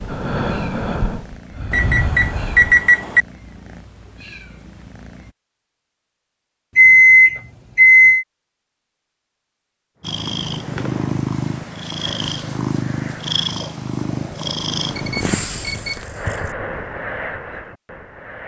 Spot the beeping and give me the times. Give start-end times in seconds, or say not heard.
1.7-3.2, 6.8-8.2, 14.8-16.1.